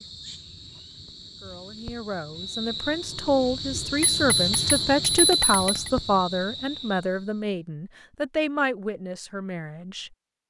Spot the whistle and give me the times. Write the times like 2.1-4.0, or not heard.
2.4-3.0, 6.1-7.0.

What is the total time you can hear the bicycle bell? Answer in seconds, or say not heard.
2 s.